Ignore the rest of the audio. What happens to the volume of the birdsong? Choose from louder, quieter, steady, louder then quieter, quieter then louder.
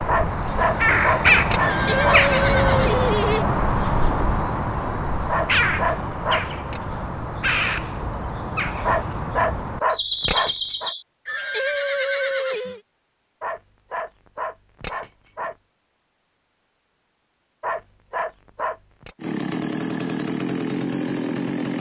quieter.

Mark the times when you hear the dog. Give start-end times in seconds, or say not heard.
0.1-2.2, 5.2-6.8, 8.8-10.9, 13.4-15.6, 17.6-19.1.